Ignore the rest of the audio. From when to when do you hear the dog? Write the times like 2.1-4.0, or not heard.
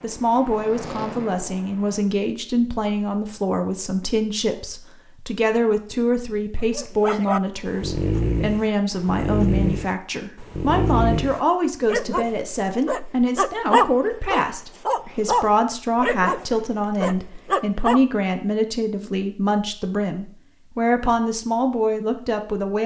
6.7-18.0.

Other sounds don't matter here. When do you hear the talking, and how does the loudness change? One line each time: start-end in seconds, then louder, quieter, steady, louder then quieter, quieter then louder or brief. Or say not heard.
0.0-22.8 steady.